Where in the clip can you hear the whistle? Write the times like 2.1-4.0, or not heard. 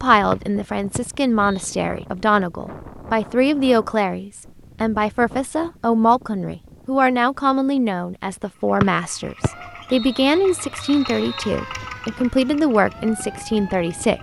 0.3-1.7, 8.8-11.5.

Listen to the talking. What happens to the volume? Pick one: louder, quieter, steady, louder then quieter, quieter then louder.
steady.